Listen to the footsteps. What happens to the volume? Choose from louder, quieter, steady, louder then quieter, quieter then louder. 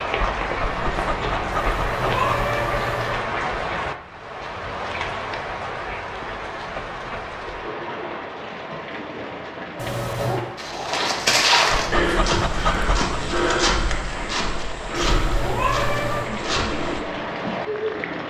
quieter.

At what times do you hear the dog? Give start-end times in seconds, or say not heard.
0.6-2.3, 11.7-13.2.